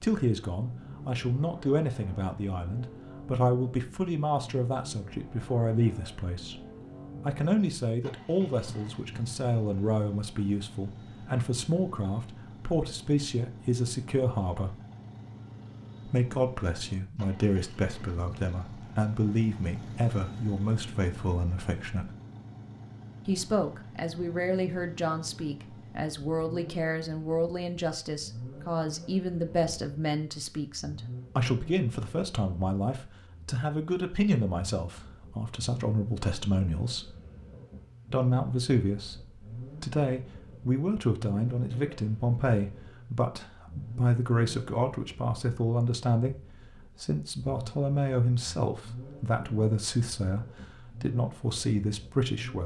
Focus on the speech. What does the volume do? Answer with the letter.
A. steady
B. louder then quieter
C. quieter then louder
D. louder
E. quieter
A.